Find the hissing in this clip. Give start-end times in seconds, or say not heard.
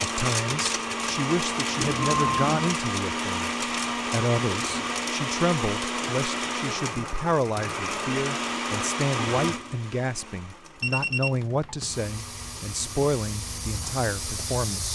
11.8-14.9.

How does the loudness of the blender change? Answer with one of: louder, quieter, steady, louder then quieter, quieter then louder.
quieter.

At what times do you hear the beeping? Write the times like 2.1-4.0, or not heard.
1.8-2.6, 10.8-11.9.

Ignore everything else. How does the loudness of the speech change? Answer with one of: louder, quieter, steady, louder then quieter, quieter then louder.
steady.